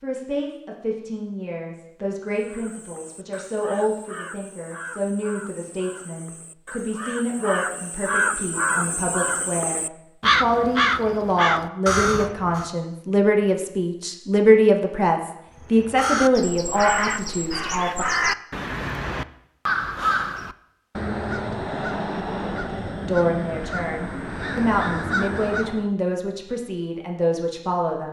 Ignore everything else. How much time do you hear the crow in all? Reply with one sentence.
The crow can be heard for 21 seconds in total.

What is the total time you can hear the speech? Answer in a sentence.
The speech can be heard for 23 seconds in total.